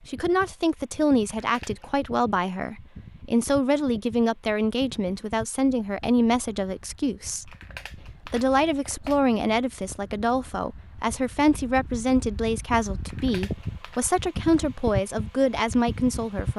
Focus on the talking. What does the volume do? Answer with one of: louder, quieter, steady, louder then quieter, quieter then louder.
steady.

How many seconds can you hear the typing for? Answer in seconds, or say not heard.
not heard.